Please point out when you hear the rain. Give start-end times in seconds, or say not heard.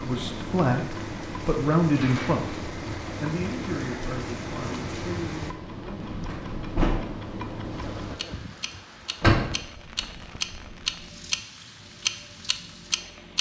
0.0-13.3.